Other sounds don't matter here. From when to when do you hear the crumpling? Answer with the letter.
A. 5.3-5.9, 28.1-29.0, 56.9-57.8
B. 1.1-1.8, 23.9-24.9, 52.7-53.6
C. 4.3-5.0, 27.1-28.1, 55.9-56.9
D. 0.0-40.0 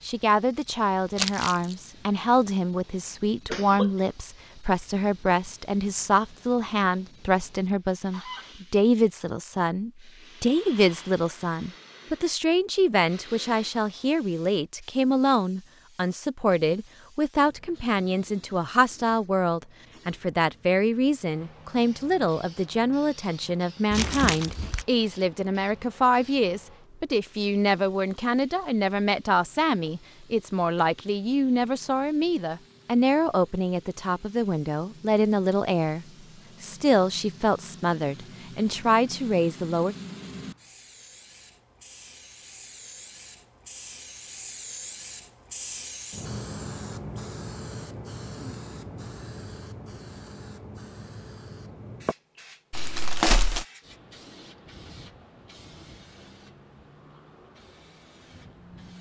B.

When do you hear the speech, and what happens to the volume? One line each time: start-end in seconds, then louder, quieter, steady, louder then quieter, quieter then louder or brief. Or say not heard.
0.0-40.0 steady.